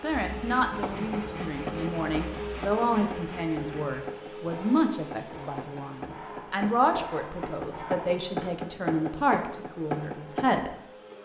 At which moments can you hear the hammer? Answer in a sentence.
The hammer can be heard from 0.8 to 10.8 s.